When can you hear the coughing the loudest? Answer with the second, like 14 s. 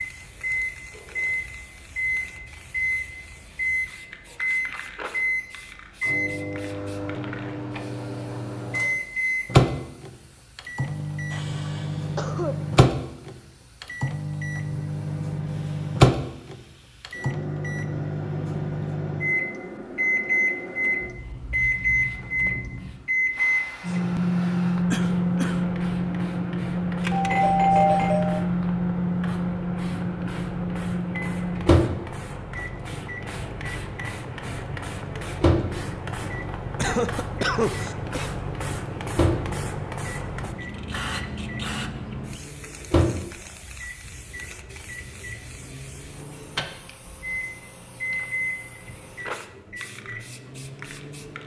38 s.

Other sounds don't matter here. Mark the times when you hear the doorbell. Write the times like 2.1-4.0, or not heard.
27.0-28.4.